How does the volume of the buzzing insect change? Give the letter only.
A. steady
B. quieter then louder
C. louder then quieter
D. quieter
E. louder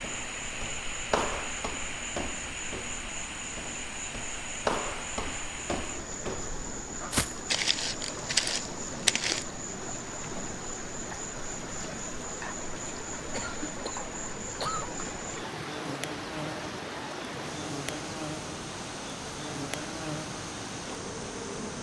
A.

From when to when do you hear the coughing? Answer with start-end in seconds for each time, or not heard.
13.3-14.9.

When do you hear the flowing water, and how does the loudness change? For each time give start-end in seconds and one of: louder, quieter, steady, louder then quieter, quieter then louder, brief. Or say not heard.
0.0-21.7 steady.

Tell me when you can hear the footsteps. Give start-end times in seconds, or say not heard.
0.0-9.4.